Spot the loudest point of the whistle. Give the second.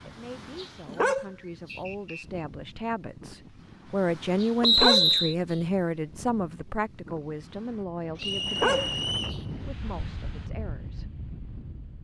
5 s.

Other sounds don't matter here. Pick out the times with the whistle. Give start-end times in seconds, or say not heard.
1.6-2.5, 4.6-5.3, 8.2-9.4.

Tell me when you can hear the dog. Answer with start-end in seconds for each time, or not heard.
0.6-1.8, 4.4-5.5, 8.2-9.3.